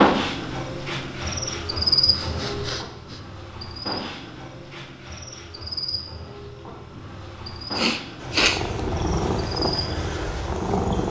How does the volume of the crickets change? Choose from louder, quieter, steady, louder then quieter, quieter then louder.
quieter.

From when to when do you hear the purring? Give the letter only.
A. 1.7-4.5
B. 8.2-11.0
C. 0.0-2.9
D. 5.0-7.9
B.